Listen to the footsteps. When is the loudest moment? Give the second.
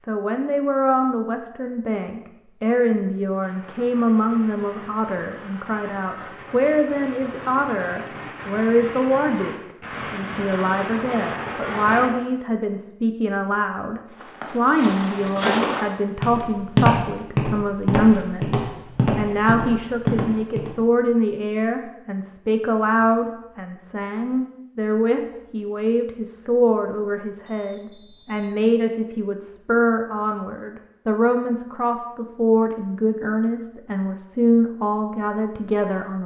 17 s.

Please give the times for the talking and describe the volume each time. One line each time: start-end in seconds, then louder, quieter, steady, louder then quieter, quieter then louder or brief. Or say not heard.
0.1-36.2 steady.